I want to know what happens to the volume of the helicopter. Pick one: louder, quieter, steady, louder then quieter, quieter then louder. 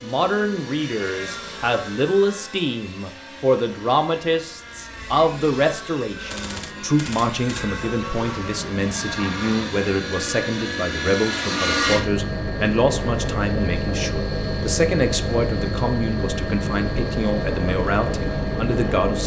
louder.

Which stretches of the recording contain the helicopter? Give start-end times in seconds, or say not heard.
0.0-19.2.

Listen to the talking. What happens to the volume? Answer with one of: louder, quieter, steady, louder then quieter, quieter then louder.
steady.